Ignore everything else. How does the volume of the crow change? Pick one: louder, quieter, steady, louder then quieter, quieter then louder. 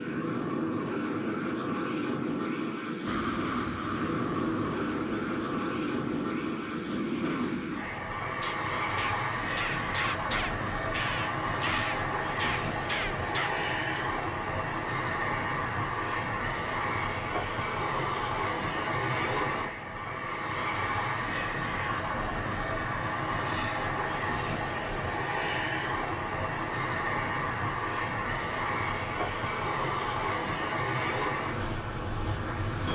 quieter then louder.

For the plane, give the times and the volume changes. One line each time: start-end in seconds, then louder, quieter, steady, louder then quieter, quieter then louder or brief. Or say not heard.
0.0-32.9 steady.